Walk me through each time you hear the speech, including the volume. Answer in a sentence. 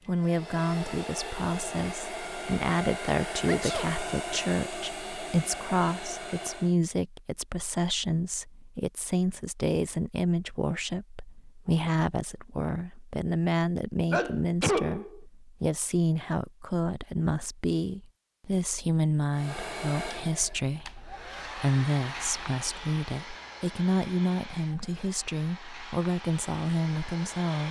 The speech can be heard from 0.1 to 27.6 s, at a steady volume.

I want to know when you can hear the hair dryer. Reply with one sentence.
You can hear the hair dryer from 0.0 to 6.8 s and from 19.3 to 27.6 s.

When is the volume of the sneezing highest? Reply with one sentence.
The volume of the sneezing peaks at 15 seconds.